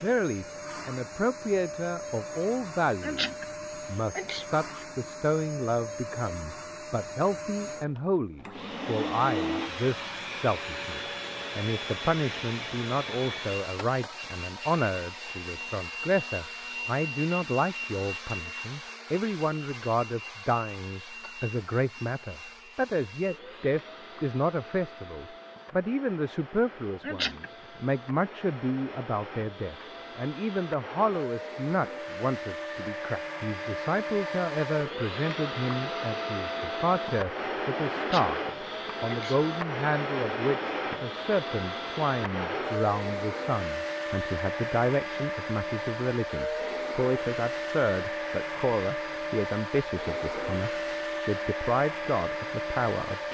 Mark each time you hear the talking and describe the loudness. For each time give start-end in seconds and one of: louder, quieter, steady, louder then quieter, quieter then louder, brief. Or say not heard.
0.0-38.4 steady
39.0-53.2 steady.